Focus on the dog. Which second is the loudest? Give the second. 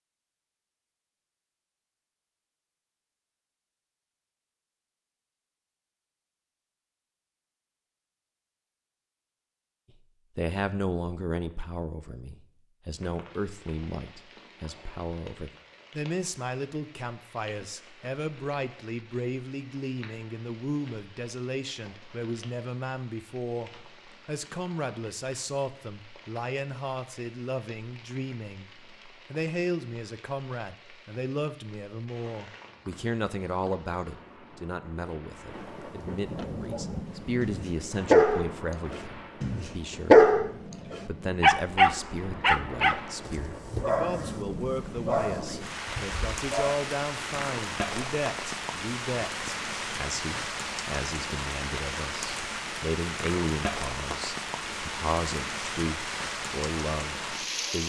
40 s.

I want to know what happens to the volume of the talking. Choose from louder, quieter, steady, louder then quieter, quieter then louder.
steady.